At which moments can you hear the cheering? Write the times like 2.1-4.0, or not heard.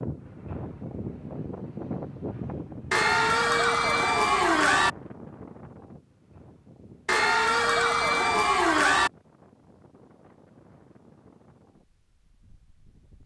2.9-4.9, 7.0-9.1.